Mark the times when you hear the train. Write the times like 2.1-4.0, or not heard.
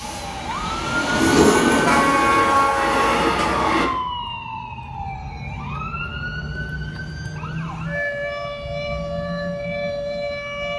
0.0-3.9.